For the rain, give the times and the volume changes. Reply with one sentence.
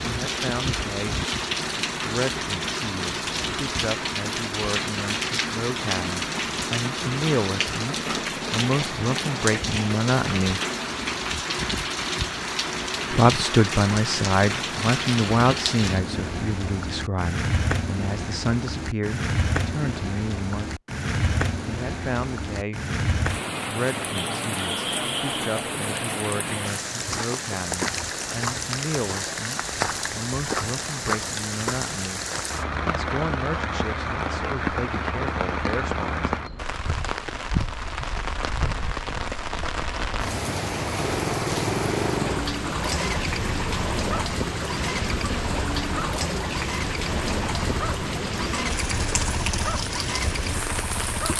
The rain can be heard from 0.0 to 51.3 s, at a steady volume.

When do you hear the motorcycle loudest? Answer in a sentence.
The loudest moment of the motorcycle is at 42 seconds.